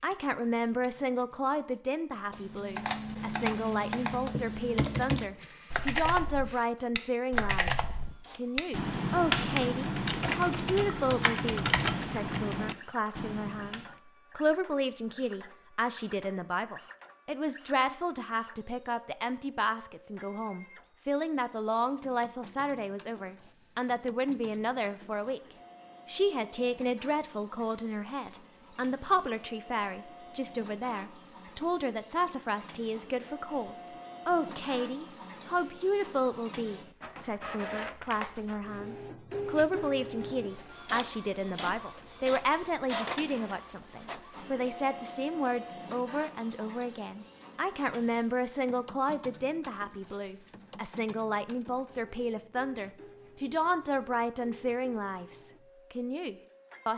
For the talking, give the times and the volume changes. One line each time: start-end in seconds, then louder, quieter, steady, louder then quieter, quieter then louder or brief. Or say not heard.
0.0-25.4 steady
26.1-56.9 steady.